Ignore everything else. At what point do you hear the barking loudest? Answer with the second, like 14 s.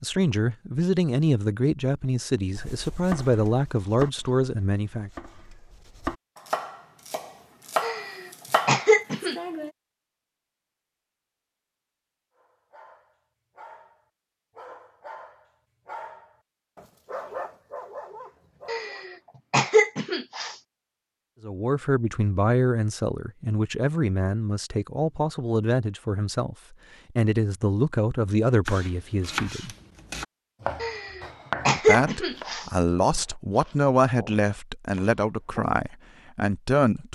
17 s.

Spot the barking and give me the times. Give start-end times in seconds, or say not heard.
12.3-19.2.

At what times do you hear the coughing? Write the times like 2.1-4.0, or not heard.
7.8-9.3, 18.6-20.6, 30.8-32.6.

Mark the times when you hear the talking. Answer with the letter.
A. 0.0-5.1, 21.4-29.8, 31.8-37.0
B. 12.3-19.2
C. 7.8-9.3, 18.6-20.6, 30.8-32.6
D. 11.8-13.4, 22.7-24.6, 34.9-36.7
A.